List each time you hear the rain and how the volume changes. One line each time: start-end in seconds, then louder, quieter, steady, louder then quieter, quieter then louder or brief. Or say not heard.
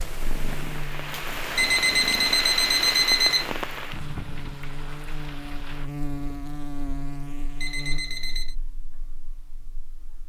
0.0-5.9 louder then quieter.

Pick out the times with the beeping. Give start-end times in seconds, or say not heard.
1.6-3.5, 7.6-8.6.